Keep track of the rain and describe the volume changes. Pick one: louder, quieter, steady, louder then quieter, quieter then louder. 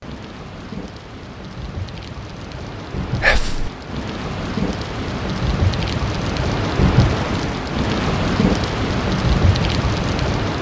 louder.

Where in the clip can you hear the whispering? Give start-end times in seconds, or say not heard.
3.2-3.7.